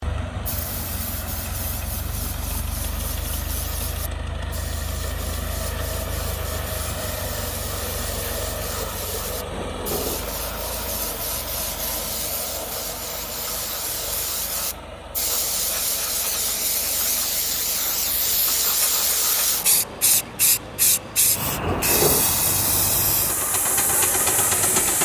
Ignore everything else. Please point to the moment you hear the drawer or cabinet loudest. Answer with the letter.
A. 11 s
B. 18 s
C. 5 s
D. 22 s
D.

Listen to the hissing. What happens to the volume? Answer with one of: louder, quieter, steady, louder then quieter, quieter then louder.
louder.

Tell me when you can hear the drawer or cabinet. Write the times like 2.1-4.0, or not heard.
9.5-10.3, 21.6-22.2.